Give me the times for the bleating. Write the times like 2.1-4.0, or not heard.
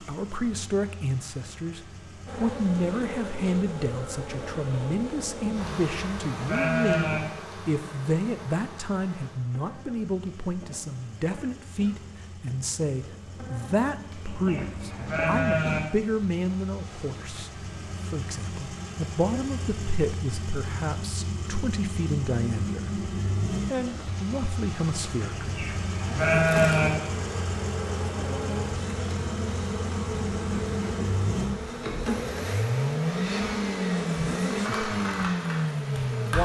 5.8-7.2, 14.2-15.8, 25.3-26.9.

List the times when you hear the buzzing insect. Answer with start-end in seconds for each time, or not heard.
2.2-15.8, 26.2-36.4.